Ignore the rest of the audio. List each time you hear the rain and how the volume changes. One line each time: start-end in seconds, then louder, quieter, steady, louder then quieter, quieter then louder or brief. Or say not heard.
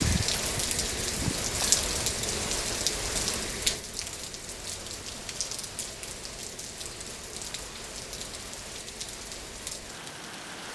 0.0-10.7 quieter.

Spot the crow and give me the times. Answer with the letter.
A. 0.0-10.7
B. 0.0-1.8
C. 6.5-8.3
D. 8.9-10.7
B.